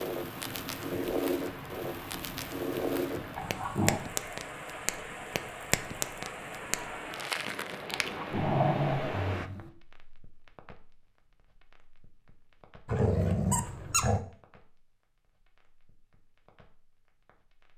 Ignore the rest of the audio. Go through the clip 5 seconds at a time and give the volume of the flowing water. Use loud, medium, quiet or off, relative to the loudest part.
loud, loud, off, off.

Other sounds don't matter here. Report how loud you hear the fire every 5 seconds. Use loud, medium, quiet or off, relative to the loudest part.
loud, loud, quiet, quiet.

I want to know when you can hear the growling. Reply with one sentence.
You can hear the growling from 3.4 to 4.0 s, from 7.9 to 9.7 s and from 12.8 to 14.2 s.